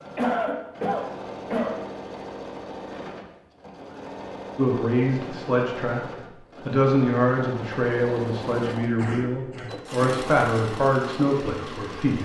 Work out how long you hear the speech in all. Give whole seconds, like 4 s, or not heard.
8 s.